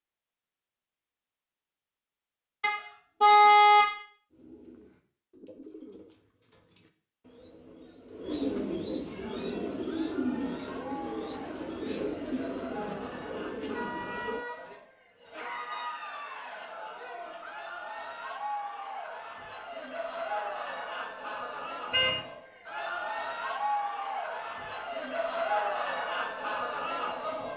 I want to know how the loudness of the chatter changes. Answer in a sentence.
The volume of the chatter goes up.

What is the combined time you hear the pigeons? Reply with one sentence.
The pigeons can be heard for 10 seconds in total.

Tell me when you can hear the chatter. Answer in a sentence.
The chatter can be heard from 9.2 to 27.5 s.